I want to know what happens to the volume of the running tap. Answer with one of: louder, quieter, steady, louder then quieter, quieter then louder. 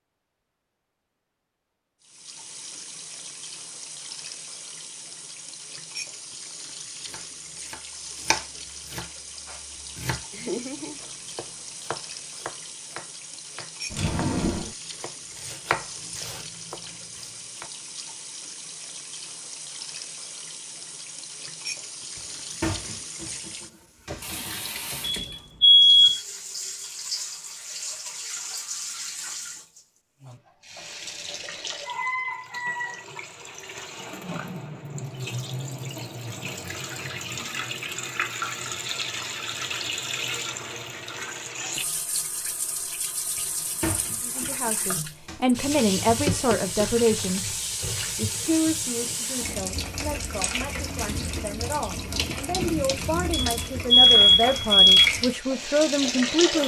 louder.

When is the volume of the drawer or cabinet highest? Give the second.
14 s.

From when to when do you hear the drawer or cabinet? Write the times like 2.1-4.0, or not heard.
13.9-14.8, 22.1-24.6, 43.4-45.4.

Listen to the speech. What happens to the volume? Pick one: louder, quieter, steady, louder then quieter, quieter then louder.
quieter then louder.